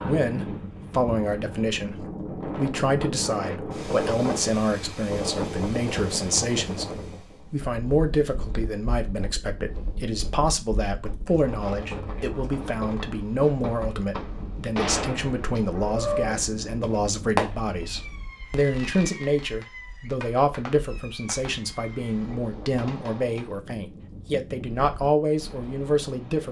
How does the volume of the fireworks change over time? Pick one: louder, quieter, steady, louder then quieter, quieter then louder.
louder then quieter.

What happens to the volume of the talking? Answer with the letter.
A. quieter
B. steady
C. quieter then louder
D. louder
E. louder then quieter
B.